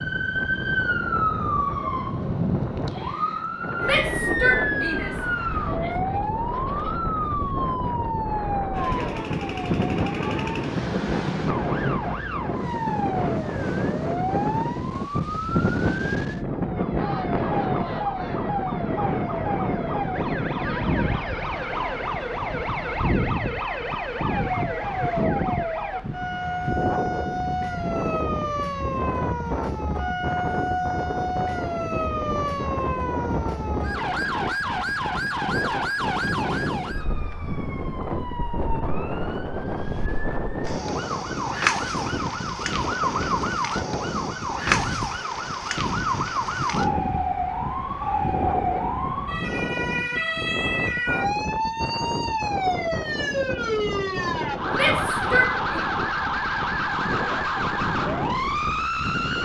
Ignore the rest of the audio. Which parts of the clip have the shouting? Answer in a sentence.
You can hear the shouting from 3.8 to 5.2 s and from 54.7 to 55.9 s.